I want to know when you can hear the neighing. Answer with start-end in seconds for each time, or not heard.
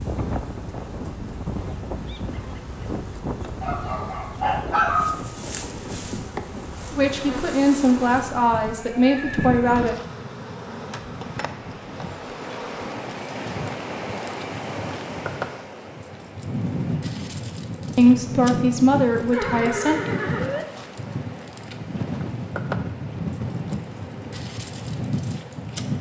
8.7-9.8, 19.3-20.6.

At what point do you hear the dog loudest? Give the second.
5 s.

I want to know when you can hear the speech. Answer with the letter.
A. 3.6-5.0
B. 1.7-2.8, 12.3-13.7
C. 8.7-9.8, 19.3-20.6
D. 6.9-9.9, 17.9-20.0
D.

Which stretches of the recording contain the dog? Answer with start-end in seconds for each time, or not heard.
3.6-5.0.